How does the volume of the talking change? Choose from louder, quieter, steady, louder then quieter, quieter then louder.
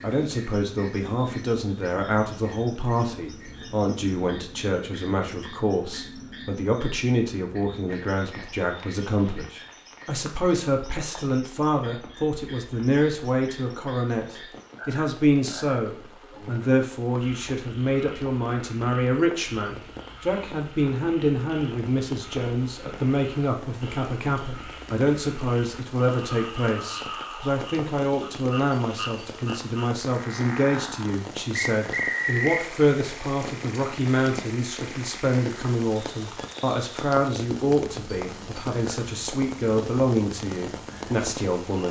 steady.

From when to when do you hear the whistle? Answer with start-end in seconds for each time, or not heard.
31.6-32.6.